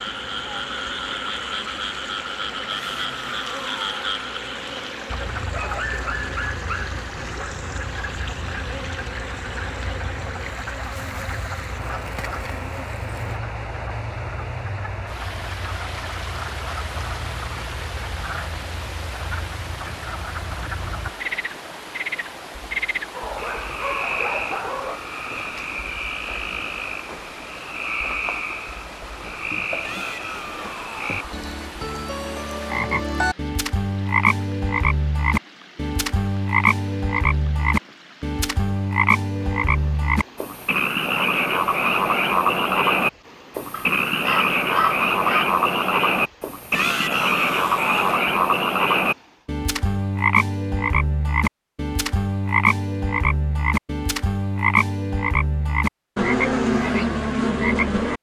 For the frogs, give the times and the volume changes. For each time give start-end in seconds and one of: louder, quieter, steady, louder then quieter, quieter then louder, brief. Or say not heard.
0.0-58.1 louder.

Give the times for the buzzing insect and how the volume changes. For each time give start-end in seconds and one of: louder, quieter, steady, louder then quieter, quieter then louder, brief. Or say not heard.
0.0-13.4 steady.